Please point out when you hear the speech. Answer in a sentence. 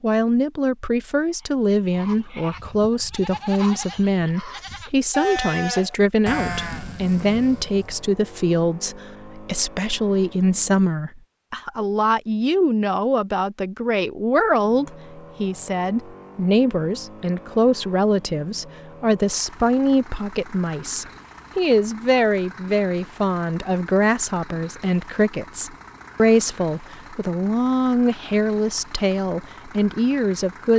The speech can be heard from 0.0 to 30.7 s.